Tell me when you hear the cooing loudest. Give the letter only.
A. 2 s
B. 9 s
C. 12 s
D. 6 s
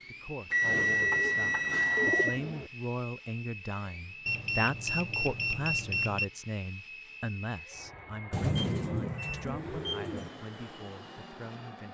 B.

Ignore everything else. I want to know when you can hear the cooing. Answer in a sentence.
The cooing can be heard from 1.0 to 2.7 s and from 8.3 to 10.3 s.